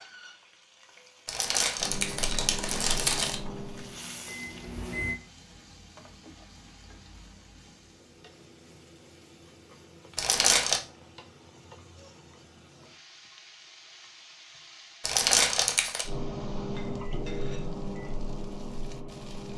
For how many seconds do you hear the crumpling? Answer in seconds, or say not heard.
4 s.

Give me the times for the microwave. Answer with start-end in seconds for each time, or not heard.
1.8-5.2, 16.1-19.5.